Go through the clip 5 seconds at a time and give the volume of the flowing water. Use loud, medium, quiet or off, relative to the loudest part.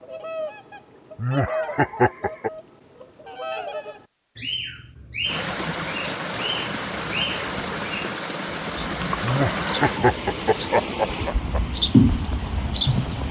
off, loud, medium.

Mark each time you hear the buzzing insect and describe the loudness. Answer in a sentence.
The buzzing insect can't be heard in this clip.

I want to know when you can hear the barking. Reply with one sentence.
You can't hear the barking here.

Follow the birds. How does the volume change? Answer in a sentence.
The volume of the birds goes up.